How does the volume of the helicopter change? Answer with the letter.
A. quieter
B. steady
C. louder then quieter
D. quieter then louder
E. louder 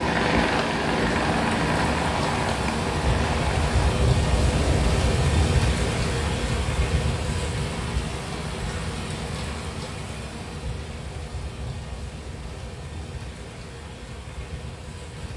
A.